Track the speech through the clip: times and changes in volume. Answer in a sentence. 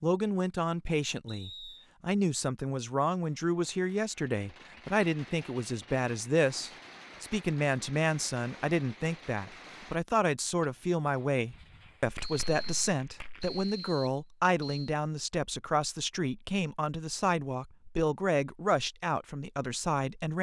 The speech can be heard from 0.0 to 20.3 s, at a steady volume.